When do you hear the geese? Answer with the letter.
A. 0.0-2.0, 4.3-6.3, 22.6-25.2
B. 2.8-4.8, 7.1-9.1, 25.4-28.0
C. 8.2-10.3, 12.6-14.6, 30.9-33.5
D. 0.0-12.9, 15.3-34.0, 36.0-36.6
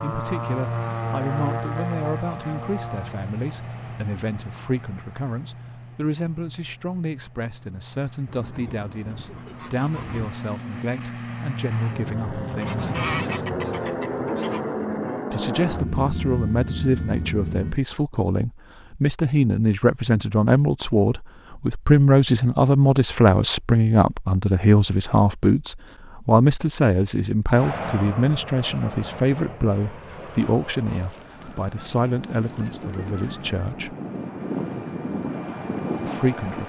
C.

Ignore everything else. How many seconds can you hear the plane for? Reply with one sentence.
You can hear the plane for 27 seconds altogether.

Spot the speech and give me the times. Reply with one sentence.
You can hear the speech from 0.0 to 12.9 s, from 15.3 to 34.0 s and from 36.0 to 36.6 s.